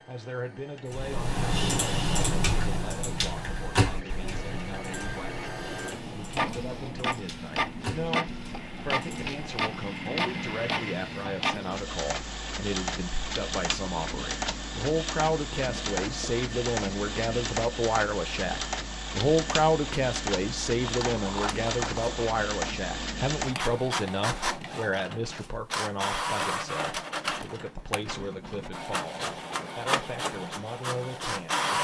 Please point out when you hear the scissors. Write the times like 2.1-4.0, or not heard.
20.8-22.2.